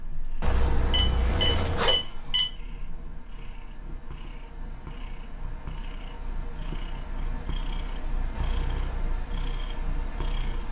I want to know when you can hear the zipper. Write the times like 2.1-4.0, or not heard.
0.4-2.0, 8.3-9.1.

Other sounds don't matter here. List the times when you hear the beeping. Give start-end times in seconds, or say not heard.
0.9-2.5.